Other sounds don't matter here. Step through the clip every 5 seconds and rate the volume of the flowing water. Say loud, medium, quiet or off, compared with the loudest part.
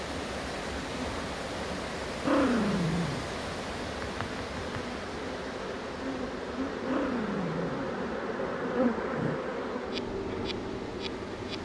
loud, medium, medium.